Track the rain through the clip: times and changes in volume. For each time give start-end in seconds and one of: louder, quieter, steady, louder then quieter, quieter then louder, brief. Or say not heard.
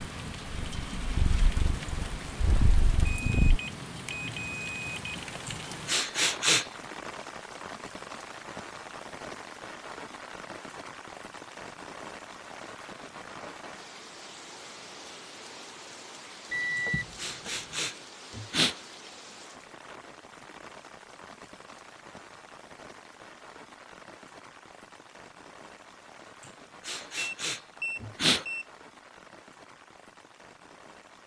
0.0-31.2 quieter.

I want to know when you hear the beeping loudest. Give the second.
17 s.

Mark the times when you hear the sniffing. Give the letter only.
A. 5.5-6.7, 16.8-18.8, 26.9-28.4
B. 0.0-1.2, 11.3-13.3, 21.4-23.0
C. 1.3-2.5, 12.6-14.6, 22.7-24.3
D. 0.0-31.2
A.